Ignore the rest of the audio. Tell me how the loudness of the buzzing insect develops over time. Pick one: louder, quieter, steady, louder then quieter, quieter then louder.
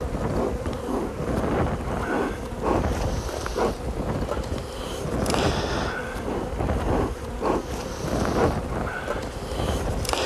steady.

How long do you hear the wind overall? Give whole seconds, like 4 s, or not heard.
10 s.